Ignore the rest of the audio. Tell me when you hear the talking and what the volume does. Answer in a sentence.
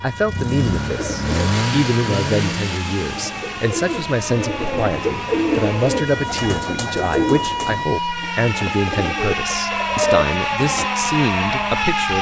The talking can be heard from 0.0 to 12.1 s, at a steady volume.